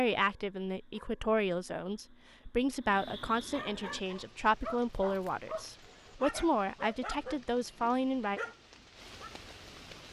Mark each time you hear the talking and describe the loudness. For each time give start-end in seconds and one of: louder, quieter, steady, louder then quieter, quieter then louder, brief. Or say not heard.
0.0-8.4 steady.